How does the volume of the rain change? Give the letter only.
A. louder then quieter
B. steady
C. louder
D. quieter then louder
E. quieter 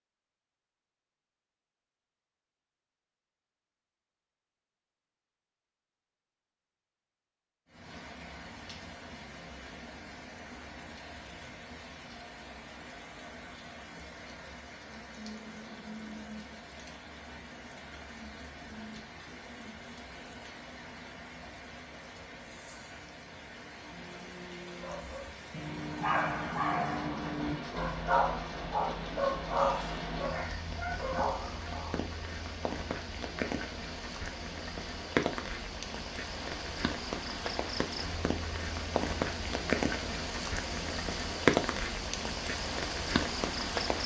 C.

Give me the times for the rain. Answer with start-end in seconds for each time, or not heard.
7.7-44.0.